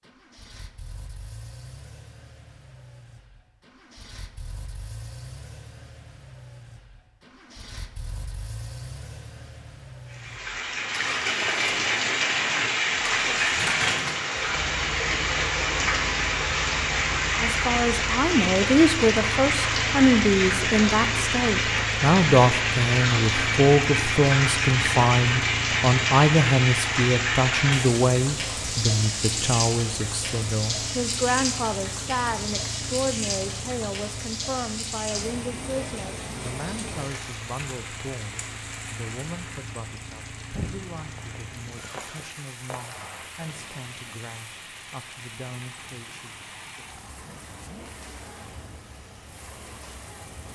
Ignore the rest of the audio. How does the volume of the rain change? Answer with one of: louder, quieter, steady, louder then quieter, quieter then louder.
quieter.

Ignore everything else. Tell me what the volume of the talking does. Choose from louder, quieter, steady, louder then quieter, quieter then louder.
quieter.